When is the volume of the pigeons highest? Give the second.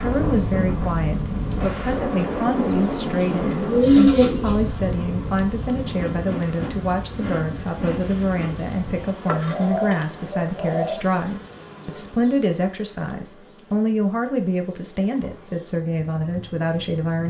4 s.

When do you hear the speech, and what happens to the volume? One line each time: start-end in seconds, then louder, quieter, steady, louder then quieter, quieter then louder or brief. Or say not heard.
0.0-17.2 steady.